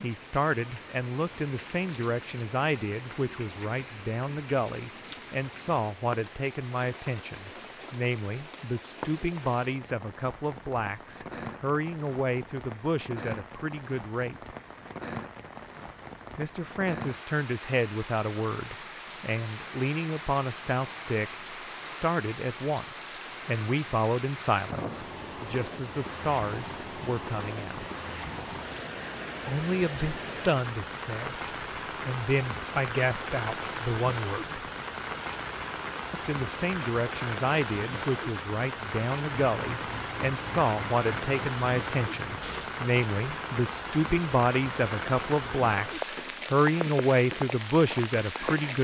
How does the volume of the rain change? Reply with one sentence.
The loudness of the rain goes up.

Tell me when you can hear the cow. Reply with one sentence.
The cow can't be heard in this clip.